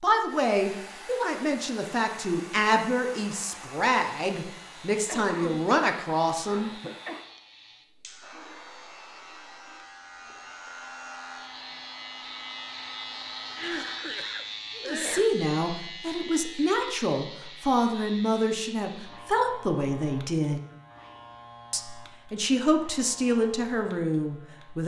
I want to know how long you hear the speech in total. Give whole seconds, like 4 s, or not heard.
16 s.